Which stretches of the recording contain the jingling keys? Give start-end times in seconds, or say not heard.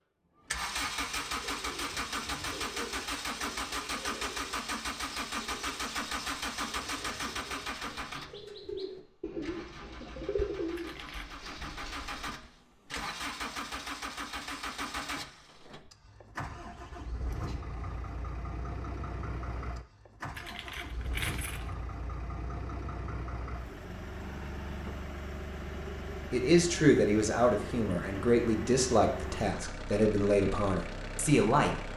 10.8-11.3, 20.4-21.8.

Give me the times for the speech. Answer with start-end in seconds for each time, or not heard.
26.3-31.8.